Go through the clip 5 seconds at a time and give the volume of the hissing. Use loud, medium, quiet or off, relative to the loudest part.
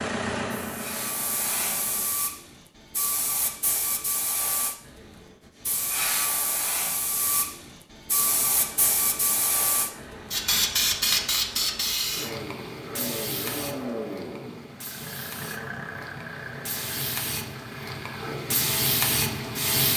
medium, loud, loud, loud.